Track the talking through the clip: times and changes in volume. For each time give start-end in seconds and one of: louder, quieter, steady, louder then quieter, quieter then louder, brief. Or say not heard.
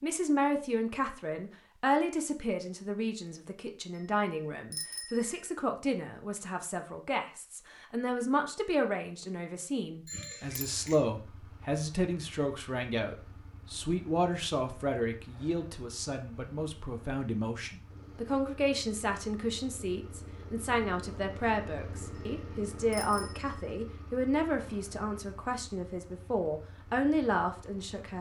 0.0-28.1 steady.